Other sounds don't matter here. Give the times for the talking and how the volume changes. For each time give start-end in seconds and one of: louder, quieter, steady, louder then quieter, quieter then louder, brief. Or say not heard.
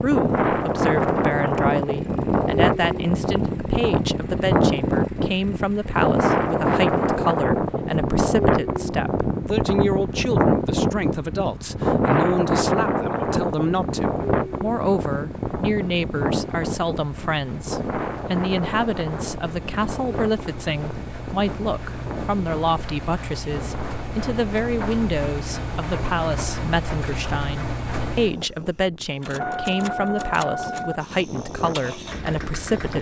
0.0-32.9 steady.